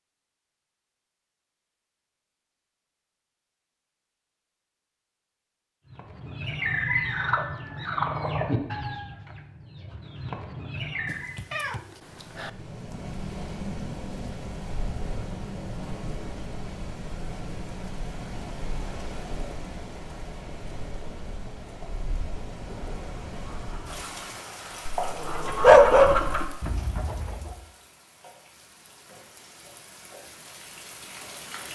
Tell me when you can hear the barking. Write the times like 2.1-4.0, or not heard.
25.0-26.5.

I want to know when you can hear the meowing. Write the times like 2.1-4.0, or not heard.
11.1-12.5.